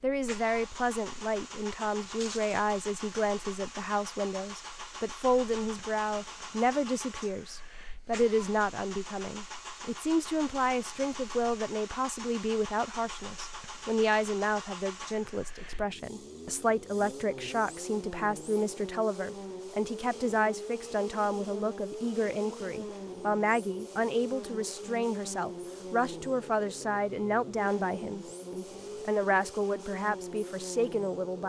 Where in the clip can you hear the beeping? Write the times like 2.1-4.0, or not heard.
not heard.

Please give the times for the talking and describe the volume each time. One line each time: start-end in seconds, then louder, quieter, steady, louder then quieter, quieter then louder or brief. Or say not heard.
0.0-31.4 steady.